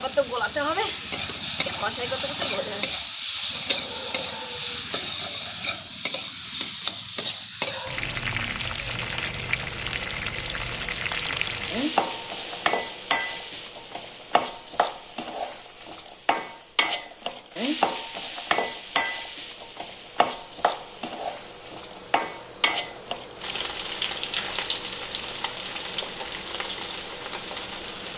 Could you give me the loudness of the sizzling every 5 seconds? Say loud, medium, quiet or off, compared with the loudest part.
loud, loud, loud, loud, loud, medium.